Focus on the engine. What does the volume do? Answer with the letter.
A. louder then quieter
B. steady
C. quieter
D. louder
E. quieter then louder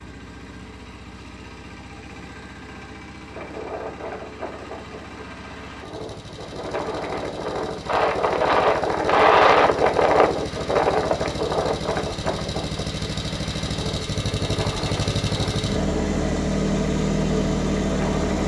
D.